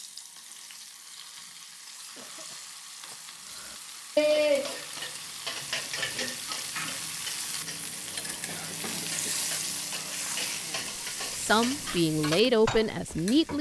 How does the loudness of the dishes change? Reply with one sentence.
The loudness of the dishes goes down, then up.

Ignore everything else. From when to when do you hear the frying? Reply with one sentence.
The frying can be heard from 0.0 to 13.5 s.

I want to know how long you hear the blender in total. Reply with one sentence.
You can't hear the blender here.